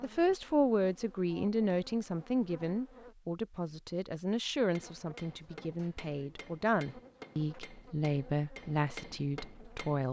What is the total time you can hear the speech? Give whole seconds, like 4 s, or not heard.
10 s.